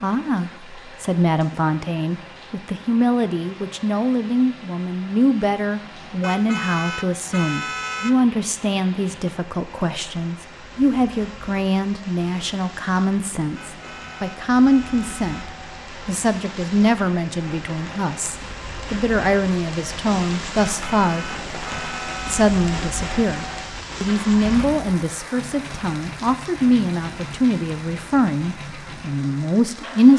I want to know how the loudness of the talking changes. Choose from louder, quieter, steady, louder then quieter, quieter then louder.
steady.